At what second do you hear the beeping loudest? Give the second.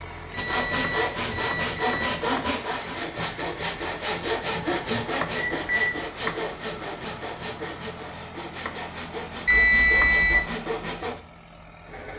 10 s.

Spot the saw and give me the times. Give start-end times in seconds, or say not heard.
0.3-11.2.